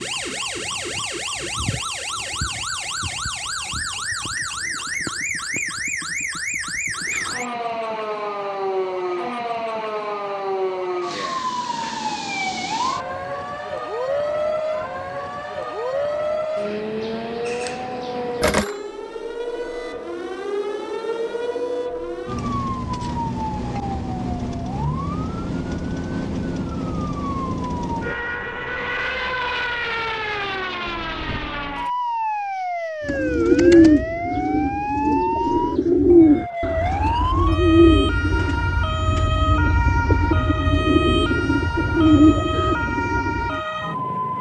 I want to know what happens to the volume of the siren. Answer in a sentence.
The volume of the siren stays about the same.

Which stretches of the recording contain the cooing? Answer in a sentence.
You can hear the cooing from 33.0 to 43.6 s.